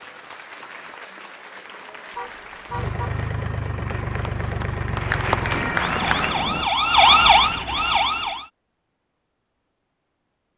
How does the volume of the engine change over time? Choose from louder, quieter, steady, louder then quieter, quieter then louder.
steady.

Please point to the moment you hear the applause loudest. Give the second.
6 s.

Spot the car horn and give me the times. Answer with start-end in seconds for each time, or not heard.
2.1-3.2.